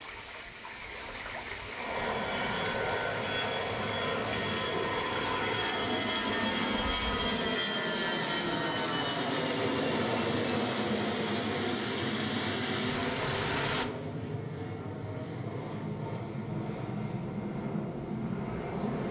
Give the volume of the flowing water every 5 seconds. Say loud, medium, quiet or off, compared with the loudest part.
medium, medium, loud, off.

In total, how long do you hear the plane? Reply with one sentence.
The plane can be heard for 17 seconds in total.